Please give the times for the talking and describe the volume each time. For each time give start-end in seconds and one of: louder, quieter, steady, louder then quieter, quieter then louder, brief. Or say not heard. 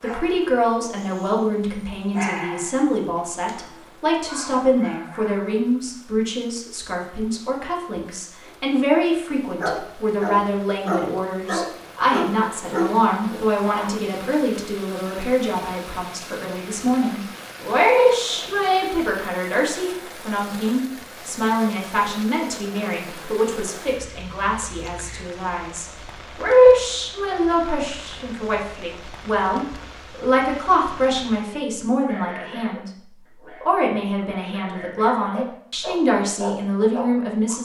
0.0-37.6 steady.